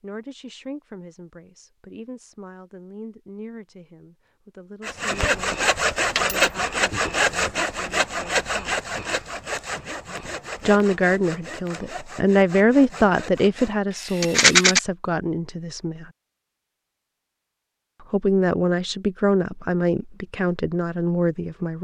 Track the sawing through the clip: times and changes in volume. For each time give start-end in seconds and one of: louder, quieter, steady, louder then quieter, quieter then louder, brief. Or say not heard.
4.8-14.8 quieter.